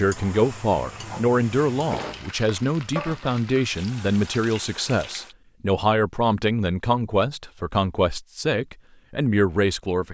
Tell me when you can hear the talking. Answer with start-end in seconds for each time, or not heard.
0.0-10.0.